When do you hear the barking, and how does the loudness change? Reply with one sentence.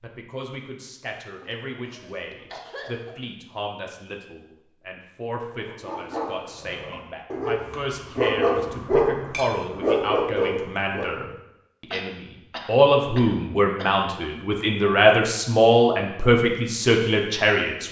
You can hear the barking from 5.7 to 11.3 s, getting louder.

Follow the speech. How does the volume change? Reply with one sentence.
The volume of the speech goes up.